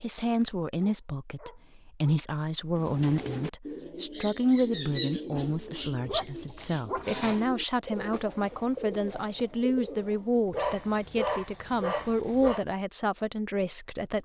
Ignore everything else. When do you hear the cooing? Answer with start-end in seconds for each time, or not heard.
2.7-10.7.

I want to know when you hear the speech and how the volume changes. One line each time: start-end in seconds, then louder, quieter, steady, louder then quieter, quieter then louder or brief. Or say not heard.
0.0-14.2 steady.